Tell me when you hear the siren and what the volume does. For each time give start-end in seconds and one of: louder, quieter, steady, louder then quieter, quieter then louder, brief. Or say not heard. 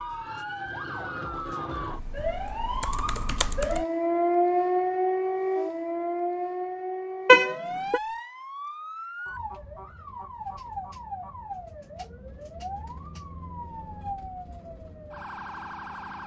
0.0-16.2 louder then quieter.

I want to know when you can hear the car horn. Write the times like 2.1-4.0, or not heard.
7.2-8.0.